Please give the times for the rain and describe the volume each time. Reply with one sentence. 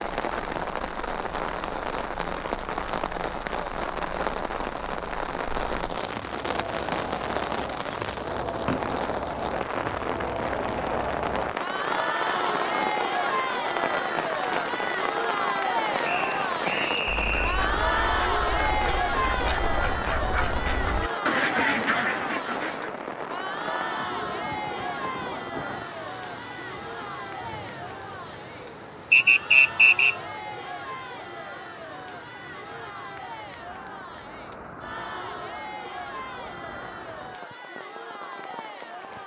The rain can be heard from 0.0 to 39.2 s, getting quieter.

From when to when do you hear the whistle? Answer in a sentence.
The whistle can be heard from 16.0 to 17.5 s and from 29.1 to 30.1 s.